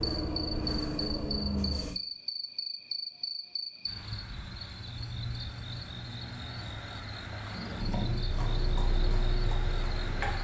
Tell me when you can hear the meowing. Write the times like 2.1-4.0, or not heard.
not heard.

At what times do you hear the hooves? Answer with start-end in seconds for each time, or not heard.
7.3-10.3.